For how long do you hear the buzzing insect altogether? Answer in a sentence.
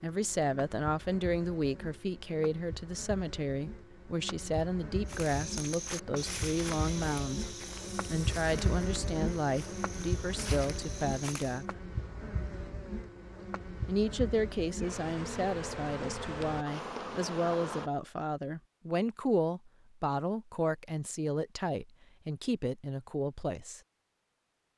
You can hear the buzzing insect for 18 seconds altogether.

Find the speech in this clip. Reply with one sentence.
You can hear the speech from 0.0 to 11.8 s and from 13.8 to 23.8 s.